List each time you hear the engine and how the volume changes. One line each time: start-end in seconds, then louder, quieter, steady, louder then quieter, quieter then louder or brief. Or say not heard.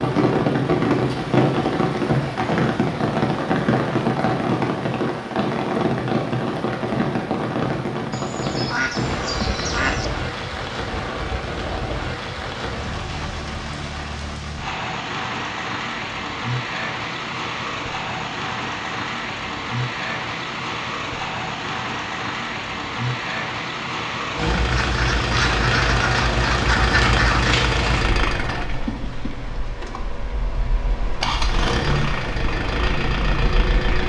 24.4-34.0 quieter then louder.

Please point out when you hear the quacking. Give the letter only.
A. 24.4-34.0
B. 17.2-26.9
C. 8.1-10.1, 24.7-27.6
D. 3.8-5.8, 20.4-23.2
C.